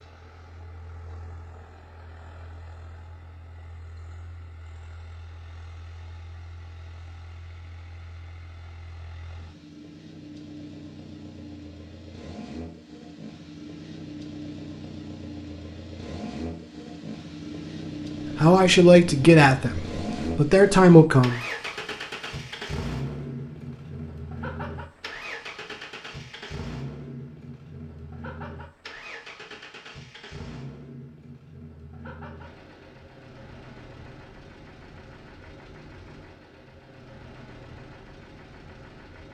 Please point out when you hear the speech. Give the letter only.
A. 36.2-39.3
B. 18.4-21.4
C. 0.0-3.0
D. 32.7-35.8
B.